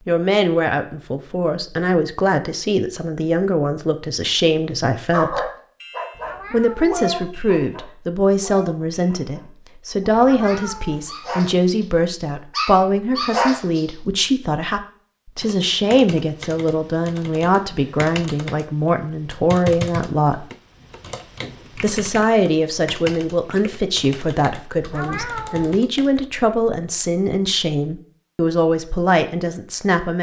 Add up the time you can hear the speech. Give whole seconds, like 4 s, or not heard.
28 s.